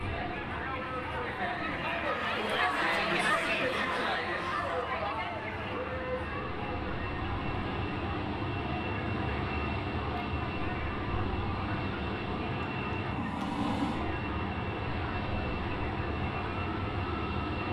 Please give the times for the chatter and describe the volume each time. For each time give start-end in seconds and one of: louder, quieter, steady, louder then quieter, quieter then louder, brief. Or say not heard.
0.0-17.6 quieter.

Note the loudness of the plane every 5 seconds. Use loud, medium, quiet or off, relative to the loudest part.
medium, loud, loud, loud.